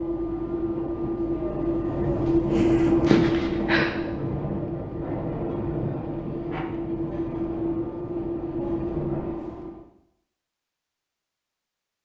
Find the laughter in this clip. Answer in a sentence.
You can hear the laughter from 3.0 to 4.0 s.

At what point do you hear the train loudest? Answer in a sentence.
The loudest moment of the train is at 3 seconds.